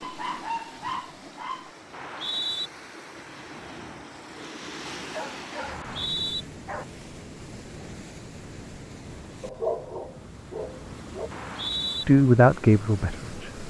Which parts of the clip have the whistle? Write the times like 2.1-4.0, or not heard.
1.9-2.7, 5.7-6.5, 11.3-12.1.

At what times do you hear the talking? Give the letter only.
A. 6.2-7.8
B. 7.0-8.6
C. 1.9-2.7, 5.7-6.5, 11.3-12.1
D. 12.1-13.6
D.